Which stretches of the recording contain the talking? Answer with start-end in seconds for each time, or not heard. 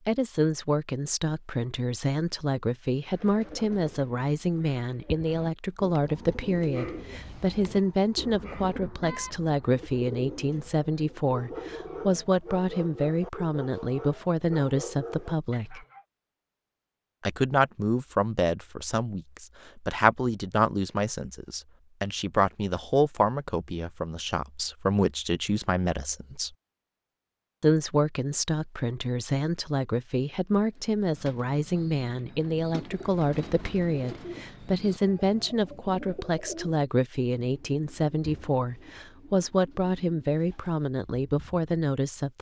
0.1-15.8, 17.2-26.5, 27.6-42.3.